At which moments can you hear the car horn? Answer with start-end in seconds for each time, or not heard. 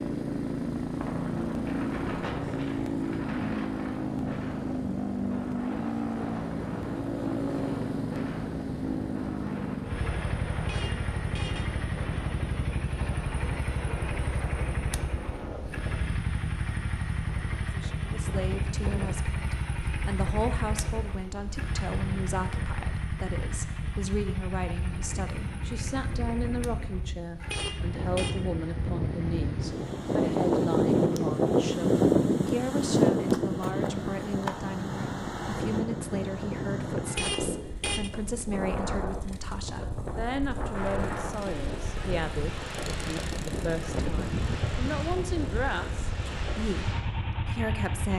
10.6-11.7, 27.4-28.4, 37.0-38.1.